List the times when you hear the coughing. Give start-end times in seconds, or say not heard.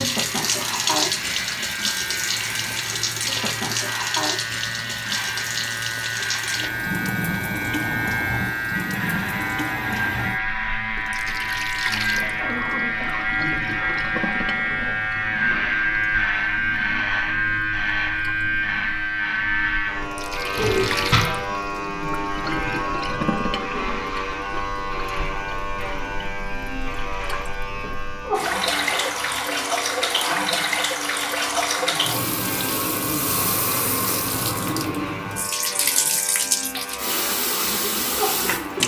12.2-14.2.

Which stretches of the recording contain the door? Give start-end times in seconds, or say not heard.
20.6-21.2.